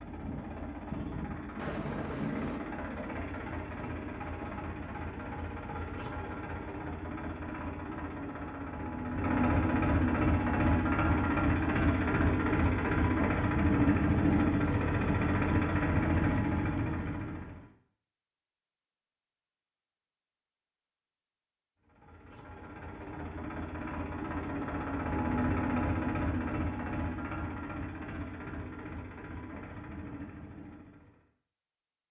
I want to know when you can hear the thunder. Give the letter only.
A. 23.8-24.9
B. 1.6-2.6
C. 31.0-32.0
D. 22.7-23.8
B.